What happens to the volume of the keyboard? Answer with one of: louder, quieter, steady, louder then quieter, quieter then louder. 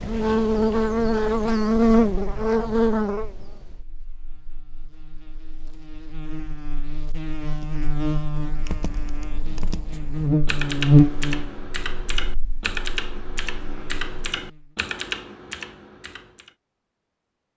louder.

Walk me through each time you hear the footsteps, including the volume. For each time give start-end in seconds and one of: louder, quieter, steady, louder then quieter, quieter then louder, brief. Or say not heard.
not heard.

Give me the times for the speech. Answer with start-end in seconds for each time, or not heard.
not heard.